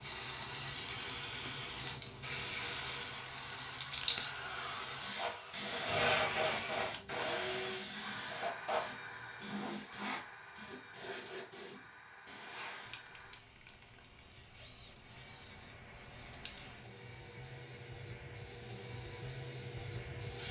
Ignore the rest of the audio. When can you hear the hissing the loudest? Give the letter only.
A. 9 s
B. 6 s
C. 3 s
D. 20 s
B.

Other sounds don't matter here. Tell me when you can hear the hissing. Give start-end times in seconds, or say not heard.
0.0-20.4.